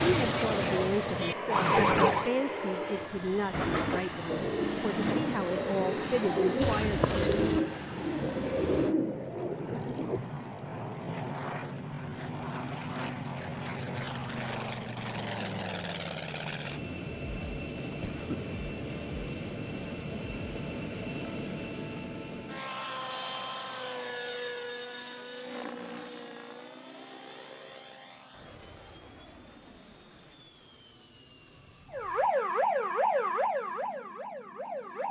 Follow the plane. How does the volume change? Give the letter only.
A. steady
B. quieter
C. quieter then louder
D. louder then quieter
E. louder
B.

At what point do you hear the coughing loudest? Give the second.
7 s.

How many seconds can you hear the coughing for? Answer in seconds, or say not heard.
2 s.